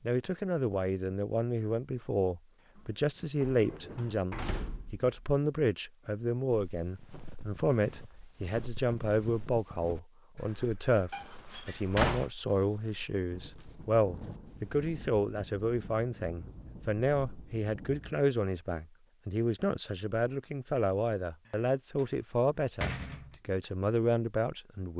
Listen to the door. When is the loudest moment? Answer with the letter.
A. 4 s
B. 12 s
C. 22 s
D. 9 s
B.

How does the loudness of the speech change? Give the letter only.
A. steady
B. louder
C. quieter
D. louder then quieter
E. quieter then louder
A.